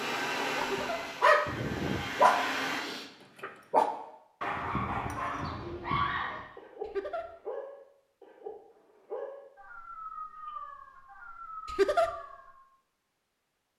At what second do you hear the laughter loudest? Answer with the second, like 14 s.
12 s.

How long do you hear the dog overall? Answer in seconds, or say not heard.
12 s.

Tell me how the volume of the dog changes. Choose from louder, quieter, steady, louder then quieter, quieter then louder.
quieter.